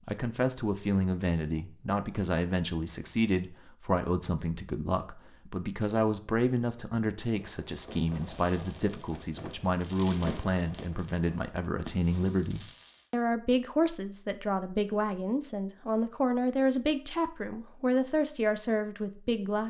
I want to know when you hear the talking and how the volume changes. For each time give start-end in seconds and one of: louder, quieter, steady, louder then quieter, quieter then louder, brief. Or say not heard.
0.1-19.6 steady.